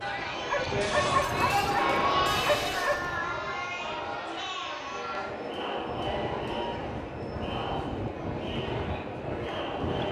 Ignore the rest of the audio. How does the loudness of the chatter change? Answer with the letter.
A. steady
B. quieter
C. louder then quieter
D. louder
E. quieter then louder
B.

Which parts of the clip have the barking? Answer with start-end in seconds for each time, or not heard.
0.5-3.1.